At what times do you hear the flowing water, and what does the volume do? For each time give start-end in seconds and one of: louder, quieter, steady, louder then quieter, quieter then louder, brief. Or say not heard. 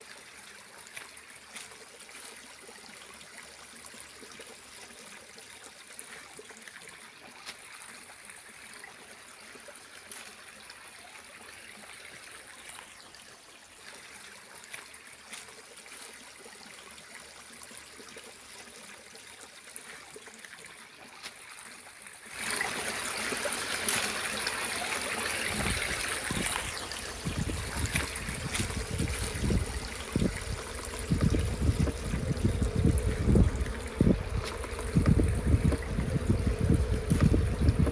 0.0-37.8 louder then quieter.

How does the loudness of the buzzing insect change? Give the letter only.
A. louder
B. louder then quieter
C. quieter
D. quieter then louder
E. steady
A.